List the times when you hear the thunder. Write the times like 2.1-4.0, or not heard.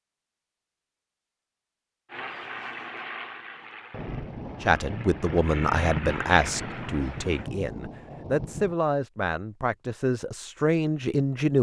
3.9-8.8.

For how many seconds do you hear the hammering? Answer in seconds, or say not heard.
not heard.